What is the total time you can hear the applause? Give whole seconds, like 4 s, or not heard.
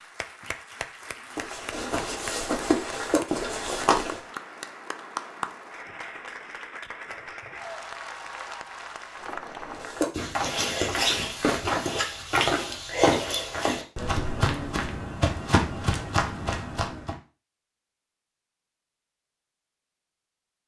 10 s.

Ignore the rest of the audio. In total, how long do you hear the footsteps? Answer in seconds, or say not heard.
10 s.